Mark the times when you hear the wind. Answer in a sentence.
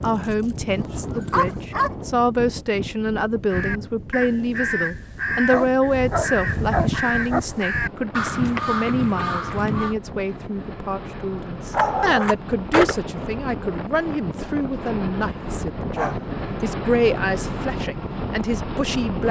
You can hear the wind from 0.0 to 19.2 s.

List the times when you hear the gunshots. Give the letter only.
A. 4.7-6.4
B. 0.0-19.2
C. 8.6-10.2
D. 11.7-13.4
D.